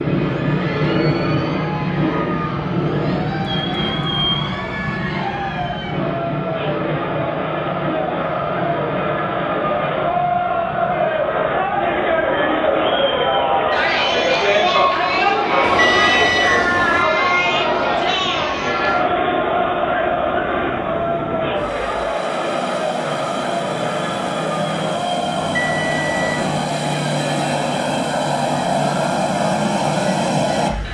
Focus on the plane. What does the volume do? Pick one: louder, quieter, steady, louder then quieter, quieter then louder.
quieter then louder.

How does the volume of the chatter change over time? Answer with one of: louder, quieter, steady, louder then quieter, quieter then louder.
louder then quieter.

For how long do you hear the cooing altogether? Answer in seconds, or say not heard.
not heard.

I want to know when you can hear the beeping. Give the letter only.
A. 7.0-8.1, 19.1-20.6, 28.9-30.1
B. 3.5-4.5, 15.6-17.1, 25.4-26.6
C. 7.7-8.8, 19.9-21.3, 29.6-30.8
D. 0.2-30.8
B.